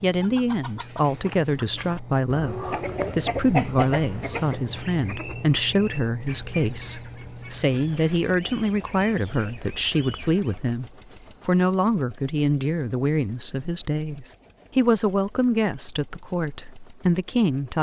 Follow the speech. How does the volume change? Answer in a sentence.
The volume of the speech stays about the same.